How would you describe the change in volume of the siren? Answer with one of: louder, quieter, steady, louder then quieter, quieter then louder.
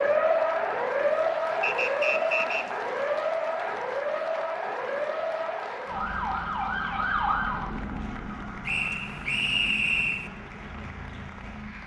quieter.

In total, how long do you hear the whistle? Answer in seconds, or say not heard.
3 s.